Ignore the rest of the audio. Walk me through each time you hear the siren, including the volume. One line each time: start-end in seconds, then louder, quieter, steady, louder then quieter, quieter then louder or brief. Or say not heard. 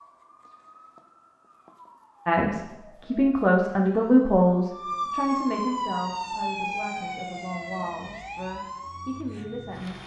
0.0-10.0 louder then quieter.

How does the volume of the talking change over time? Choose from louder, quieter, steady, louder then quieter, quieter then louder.
quieter.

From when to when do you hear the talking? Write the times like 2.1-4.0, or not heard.
2.2-10.0.